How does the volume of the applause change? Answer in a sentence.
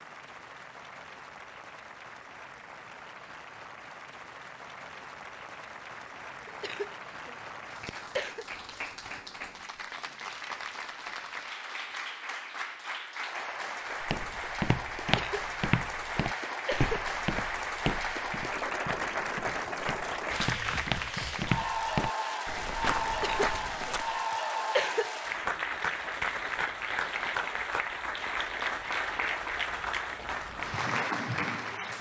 The loudness of the applause goes up.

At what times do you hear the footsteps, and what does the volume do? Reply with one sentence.
The footsteps can be heard from 14.0 to 24.1 s, getting quieter then louder.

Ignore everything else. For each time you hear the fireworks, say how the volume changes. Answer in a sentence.
You can't hear the fireworks here.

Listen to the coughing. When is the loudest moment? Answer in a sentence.
The loudest moment of the coughing is at 25 seconds.